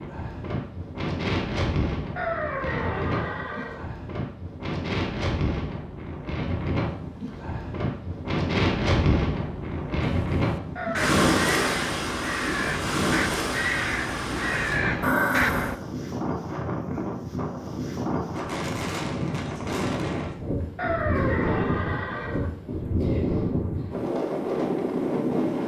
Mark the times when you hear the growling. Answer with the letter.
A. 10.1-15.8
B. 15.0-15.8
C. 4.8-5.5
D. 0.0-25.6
B.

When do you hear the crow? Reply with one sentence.
The crow can be heard from 10.1 to 15.8 s.